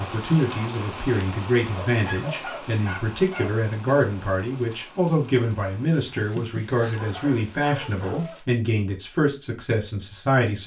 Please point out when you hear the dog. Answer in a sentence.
You can hear the dog from 1.7 to 3.5 s and from 6.8 to 8.4 s.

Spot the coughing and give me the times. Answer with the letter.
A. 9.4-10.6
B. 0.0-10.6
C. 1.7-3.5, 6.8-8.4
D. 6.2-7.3
D.